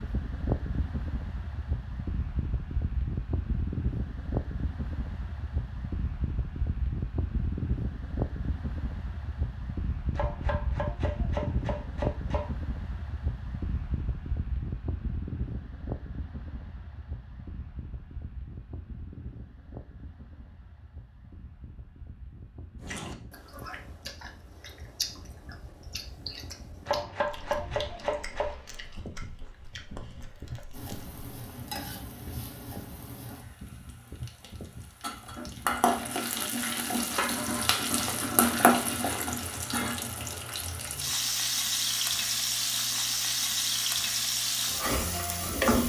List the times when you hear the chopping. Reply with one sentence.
You can hear the chopping from 10.2 to 12.6 s and from 26.9 to 28.6 s.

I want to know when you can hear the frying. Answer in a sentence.
The frying can be heard from 30.7 to 45.8 s.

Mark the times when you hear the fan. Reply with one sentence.
The fan can be heard from 0.0 to 36.0 s.